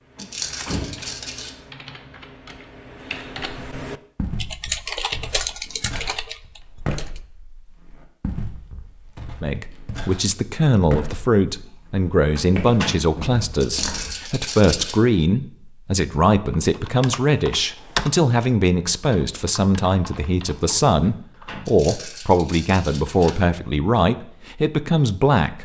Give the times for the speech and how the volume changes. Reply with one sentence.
You can hear the speech from 9.4 to 25.5 s, at a steady volume.